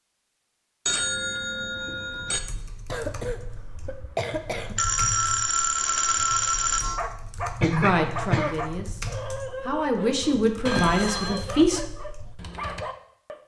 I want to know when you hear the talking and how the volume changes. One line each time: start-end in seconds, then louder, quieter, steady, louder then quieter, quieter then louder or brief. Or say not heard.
7.6-11.8 quieter then louder.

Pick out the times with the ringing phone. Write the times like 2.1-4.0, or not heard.
0.8-2.4, 4.8-7.0, 10.7-11.5.